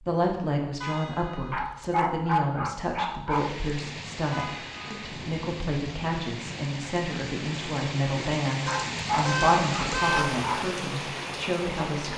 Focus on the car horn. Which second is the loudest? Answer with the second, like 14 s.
10 s.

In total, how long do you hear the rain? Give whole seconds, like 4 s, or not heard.
9 s.